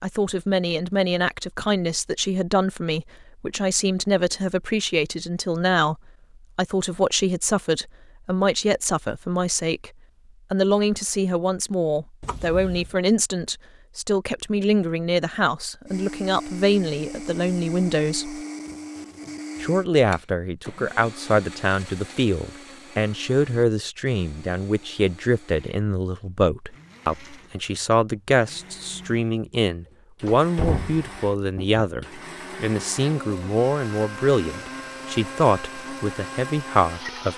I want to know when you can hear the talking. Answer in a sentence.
The talking can be heard from 0.0 to 6.0 s, from 6.5 to 9.9 s, from 10.5 to 18.4 s and from 19.6 to 37.3 s.